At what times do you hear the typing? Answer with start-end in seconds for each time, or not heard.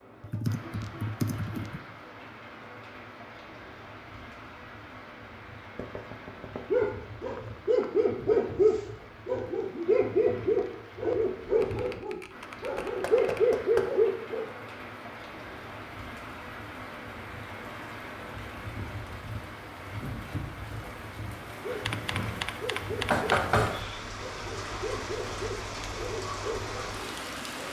0.2-1.8, 11.4-13.4, 21.9-23.4.